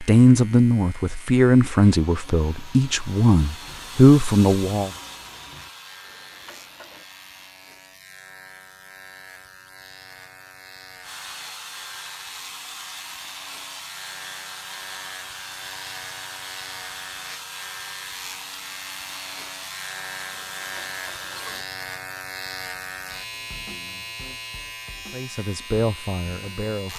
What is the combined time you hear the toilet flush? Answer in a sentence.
You can hear the toilet flush for 2 seconds altogether.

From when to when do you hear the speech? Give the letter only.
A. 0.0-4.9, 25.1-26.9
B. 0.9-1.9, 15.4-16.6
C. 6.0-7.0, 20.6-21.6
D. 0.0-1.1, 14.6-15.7
A.